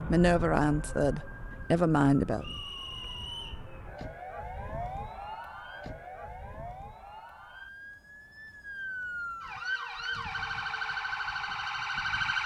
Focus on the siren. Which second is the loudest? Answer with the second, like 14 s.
12 s.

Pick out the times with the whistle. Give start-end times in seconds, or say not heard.
2.4-3.6.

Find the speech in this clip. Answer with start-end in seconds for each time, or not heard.
0.0-2.5.